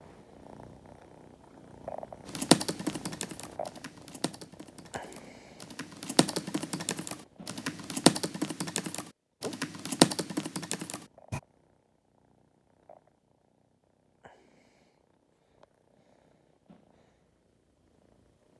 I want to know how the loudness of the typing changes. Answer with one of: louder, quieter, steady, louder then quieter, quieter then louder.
quieter then louder.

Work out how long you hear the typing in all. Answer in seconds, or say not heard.
9 s.